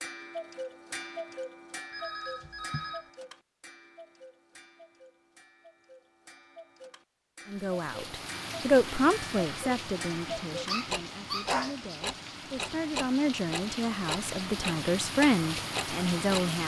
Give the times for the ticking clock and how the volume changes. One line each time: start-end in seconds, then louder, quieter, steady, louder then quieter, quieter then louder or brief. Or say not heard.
0.0-16.4 quieter then louder.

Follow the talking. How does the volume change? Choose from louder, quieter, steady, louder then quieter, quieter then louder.
quieter then louder.